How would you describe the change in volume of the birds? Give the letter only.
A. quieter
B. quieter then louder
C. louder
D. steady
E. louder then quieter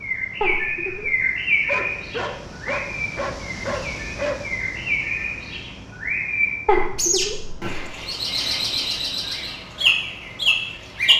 B.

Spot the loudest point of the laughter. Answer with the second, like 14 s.
7 s.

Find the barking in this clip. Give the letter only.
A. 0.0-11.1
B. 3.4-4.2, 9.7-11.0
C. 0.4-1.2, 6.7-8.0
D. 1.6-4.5
D.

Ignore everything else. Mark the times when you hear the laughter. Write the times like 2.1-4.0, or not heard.
0.4-1.2, 6.7-8.0.